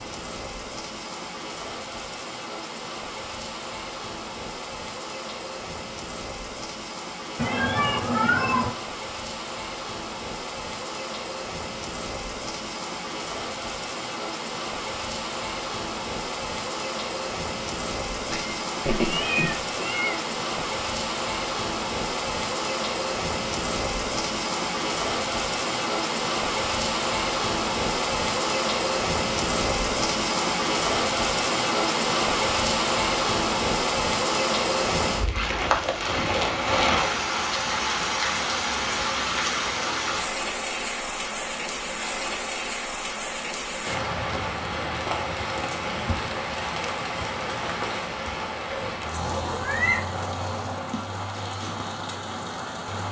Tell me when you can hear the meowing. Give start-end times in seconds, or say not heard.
7.3-8.8, 18.3-20.6, 48.6-50.0.